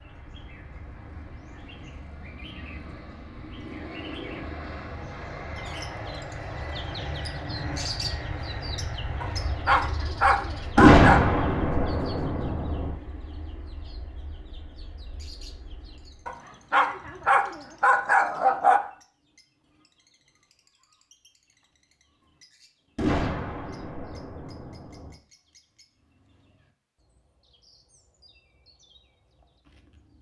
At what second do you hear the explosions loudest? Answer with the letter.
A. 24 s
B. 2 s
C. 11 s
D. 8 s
C.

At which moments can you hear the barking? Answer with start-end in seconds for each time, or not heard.
9.2-11.3, 16.2-18.8.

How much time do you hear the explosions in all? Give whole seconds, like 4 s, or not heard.
4 s.